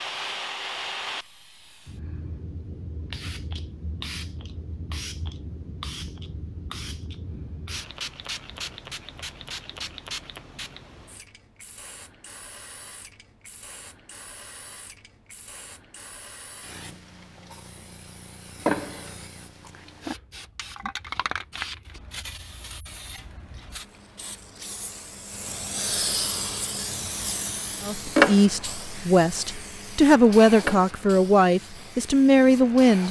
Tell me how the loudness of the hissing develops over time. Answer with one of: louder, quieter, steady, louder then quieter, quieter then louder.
louder.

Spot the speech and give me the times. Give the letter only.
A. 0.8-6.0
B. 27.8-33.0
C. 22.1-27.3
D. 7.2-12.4
B.